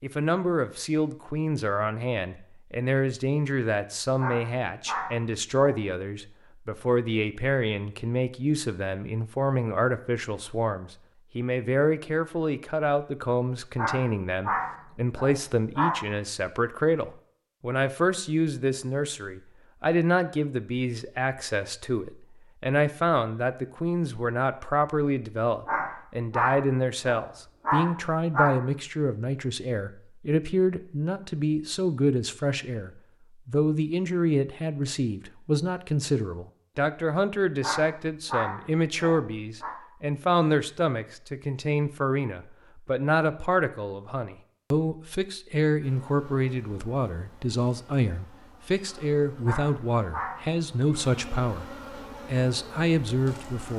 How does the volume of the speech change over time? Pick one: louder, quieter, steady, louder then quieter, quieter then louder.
steady.